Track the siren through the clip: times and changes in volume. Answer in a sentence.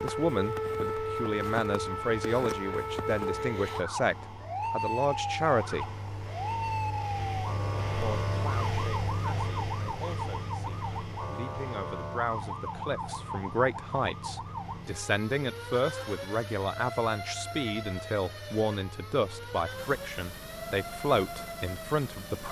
The siren can be heard from 0.0 to 22.4 s, getting quieter.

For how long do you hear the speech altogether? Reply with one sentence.
The speech can be heard for 20 seconds in total.